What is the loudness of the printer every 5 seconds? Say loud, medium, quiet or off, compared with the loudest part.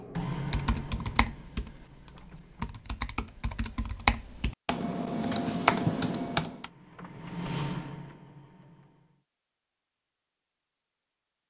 loud, loud, off.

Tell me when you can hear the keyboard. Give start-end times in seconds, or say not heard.
0.4-6.7.